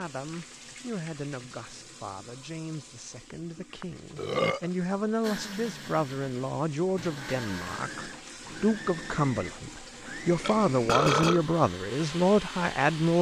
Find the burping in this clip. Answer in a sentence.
The burping can be heard from 3.8 to 4.7 s and from 10.4 to 11.4 s.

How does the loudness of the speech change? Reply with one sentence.
The volume of the speech goes up.